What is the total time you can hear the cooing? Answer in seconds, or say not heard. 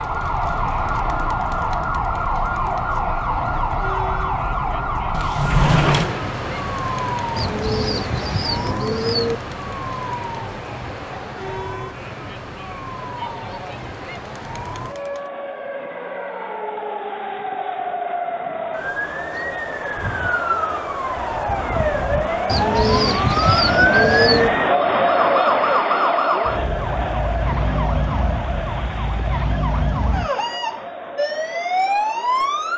4 s.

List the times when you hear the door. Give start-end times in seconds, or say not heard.
5.1-6.2.